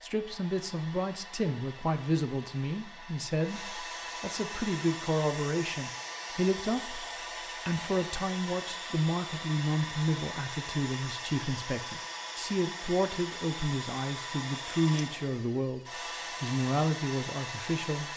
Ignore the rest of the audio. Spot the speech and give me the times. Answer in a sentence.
You can hear the speech from 0.0 to 7.0 s, from 7.7 to 15.8 s and from 16.4 to 18.1 s.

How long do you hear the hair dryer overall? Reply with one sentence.
The hair dryer can be heard for 18 seconds in total.